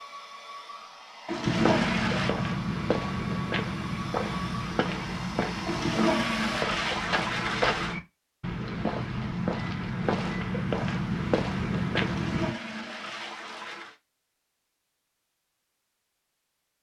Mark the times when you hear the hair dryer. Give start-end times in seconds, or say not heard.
0.0-6.7.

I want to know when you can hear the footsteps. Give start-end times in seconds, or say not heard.
1.4-12.6.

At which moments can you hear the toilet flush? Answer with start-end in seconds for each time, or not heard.
1.2-2.4, 5.7-8.0, 12.0-13.9.